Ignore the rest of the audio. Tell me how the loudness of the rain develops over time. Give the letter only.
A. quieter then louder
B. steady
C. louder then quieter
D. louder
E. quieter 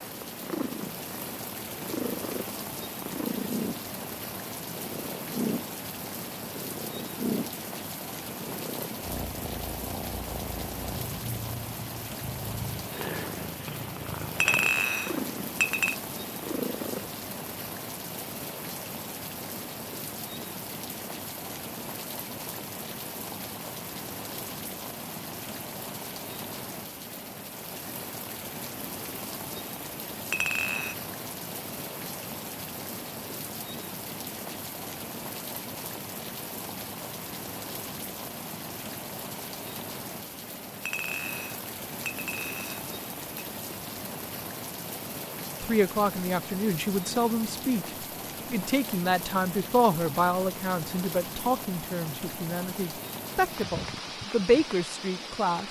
B.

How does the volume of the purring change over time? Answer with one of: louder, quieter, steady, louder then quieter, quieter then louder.
steady.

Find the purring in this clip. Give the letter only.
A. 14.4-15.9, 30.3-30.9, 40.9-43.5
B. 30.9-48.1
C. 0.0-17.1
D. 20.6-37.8
C.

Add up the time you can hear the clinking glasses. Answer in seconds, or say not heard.
5 s.